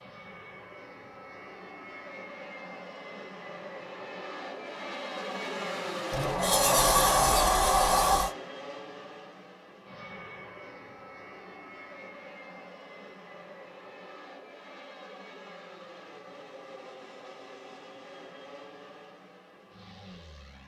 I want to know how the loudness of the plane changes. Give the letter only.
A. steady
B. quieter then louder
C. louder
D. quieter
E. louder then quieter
E.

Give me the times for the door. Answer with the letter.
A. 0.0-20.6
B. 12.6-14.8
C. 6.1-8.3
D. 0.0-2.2
C.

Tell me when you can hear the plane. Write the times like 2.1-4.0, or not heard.
0.0-20.6.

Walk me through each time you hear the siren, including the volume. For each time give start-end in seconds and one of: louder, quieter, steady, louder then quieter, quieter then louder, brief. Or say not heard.
not heard.